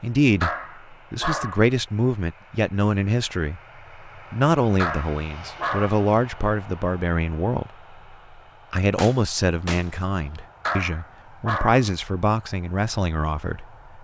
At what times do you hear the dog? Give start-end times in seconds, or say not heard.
0.4-1.7, 4.8-6.0, 10.7-11.8.